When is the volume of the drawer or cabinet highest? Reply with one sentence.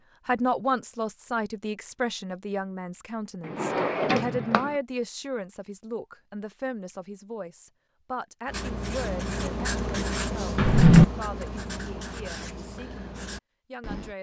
The loudest moment of the drawer or cabinet is at 11 seconds.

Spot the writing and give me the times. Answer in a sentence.
The writing can be heard from 8.4 to 14.1 s.